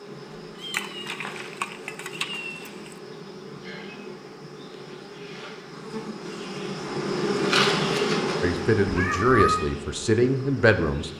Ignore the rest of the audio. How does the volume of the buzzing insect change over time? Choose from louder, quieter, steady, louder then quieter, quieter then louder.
louder then quieter.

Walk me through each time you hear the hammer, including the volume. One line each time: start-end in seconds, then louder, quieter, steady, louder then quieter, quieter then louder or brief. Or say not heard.
not heard.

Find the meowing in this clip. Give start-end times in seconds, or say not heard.
0.6-2.7, 8.8-9.7.